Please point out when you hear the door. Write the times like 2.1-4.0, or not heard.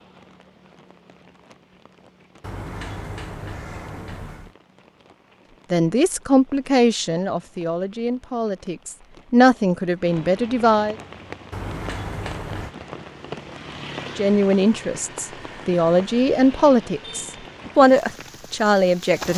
2.4-4.5, 11.5-12.8.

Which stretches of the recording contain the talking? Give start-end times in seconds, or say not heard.
5.7-10.9, 14.2-19.3.